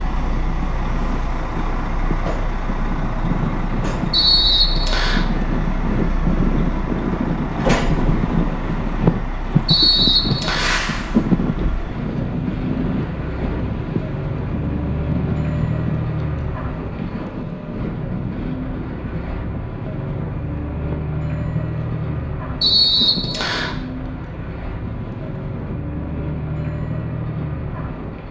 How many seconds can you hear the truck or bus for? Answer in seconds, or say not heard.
28 s.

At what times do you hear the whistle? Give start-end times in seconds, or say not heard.
4.1-5.2, 9.7-10.8, 22.6-23.8.